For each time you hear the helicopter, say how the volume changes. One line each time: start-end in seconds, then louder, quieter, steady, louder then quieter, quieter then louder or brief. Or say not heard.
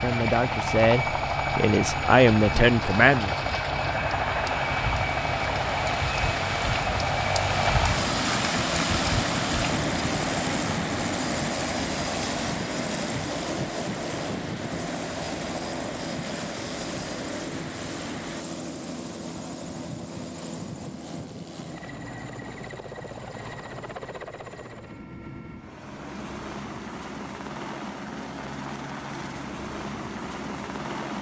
0.0-31.1 quieter.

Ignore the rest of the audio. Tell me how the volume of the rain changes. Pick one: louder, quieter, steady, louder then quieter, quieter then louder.
louder then quieter.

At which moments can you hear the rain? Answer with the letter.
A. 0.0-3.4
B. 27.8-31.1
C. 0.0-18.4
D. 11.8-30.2
C.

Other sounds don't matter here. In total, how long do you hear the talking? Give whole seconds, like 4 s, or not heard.
3 s.